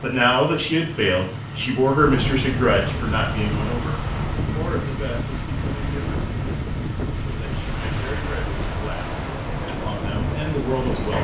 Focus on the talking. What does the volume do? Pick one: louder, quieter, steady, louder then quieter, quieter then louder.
quieter then louder.